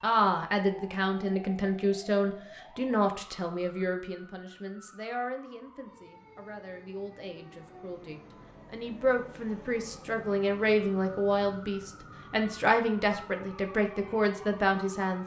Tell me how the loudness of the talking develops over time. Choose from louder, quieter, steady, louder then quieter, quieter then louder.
quieter then louder.